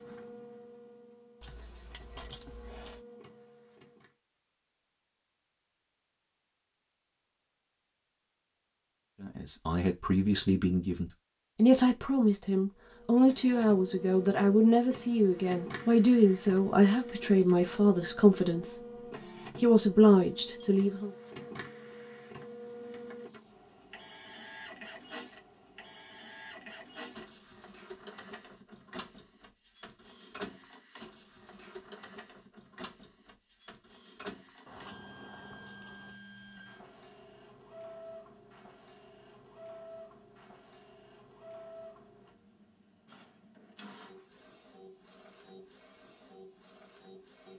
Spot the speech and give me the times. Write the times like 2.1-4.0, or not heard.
9.2-19.0, 19.6-21.1.